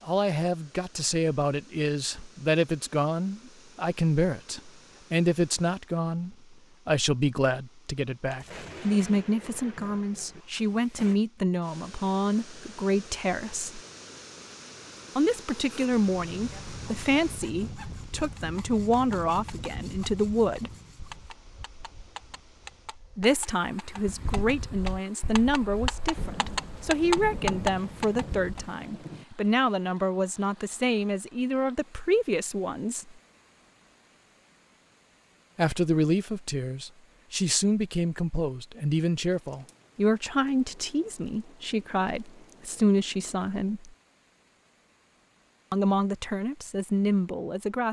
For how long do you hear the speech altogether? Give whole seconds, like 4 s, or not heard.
40 s.